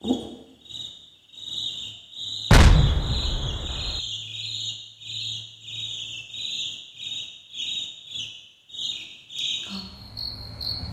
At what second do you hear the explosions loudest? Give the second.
3 s.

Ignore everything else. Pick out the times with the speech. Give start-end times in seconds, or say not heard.
not heard.